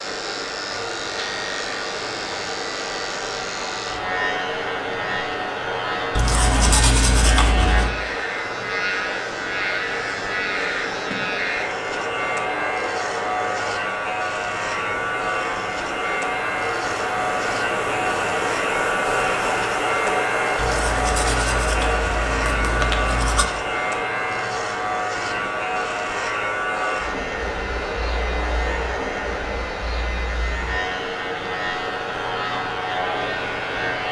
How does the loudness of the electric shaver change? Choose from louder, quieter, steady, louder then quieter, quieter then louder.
steady.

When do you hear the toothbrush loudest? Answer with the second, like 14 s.
7 s.